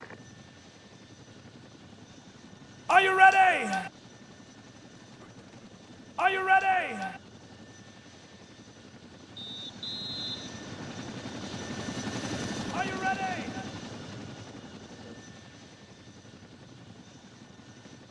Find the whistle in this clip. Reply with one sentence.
The whistle can be heard from 9.3 to 11.0 s.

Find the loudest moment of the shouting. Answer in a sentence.
The volume of the shouting peaks at 3 seconds.